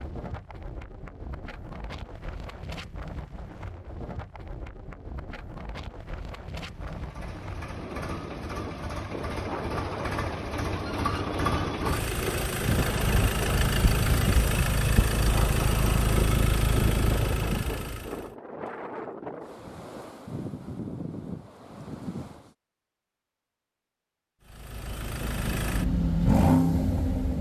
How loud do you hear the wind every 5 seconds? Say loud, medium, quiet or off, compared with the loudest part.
medium, loud, loud, loud, loud, off.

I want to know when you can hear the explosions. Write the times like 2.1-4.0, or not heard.
not heard.